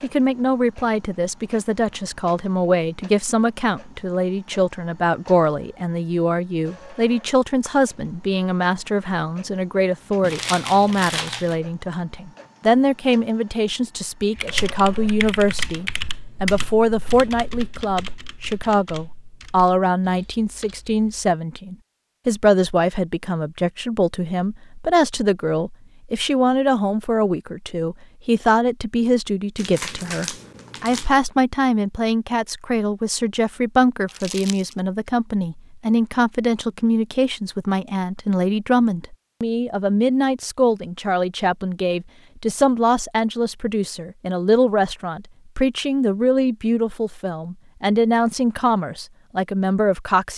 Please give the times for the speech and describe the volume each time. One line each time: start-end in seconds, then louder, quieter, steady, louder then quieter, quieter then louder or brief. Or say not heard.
0.0-50.3 steady.